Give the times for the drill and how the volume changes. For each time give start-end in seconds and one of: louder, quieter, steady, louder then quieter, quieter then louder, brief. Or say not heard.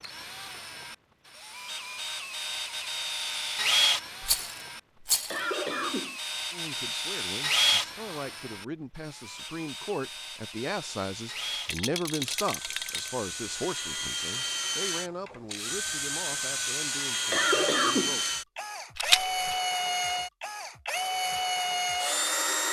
0.0-22.6 quieter then louder.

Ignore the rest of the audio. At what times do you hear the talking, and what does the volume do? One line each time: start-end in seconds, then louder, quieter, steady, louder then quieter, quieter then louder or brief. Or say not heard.
6.5-18.2 louder then quieter.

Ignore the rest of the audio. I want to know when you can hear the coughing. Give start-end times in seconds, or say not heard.
5.3-6.2, 17.3-18.2.